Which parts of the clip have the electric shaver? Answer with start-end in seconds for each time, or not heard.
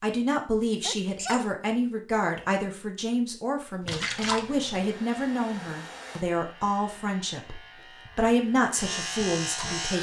5.1-9.9.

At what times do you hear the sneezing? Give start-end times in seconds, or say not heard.
0.8-1.4.